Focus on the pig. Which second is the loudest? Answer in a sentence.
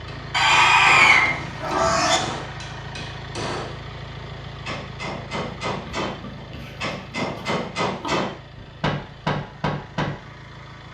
The volume of the pig peaks at 1 second.